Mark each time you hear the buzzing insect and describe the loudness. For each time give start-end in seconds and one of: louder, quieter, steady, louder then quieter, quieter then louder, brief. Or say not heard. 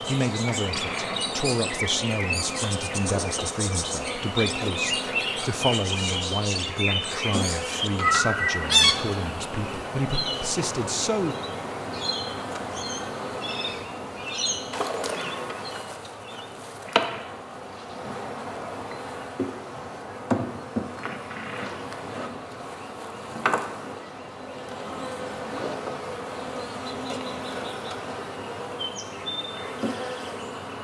0.0-30.7 steady.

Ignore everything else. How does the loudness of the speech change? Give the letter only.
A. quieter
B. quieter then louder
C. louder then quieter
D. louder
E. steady
E.